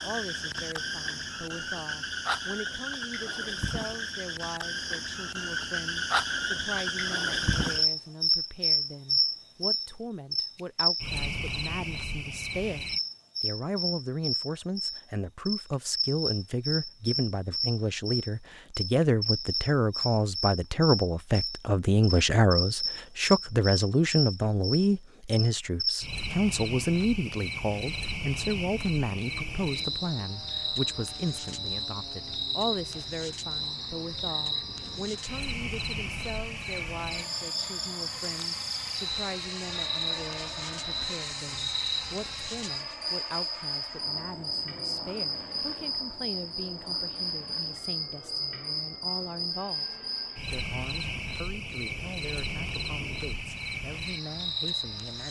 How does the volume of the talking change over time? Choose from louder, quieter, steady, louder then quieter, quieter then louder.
louder then quieter.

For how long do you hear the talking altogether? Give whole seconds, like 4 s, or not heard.
55 s.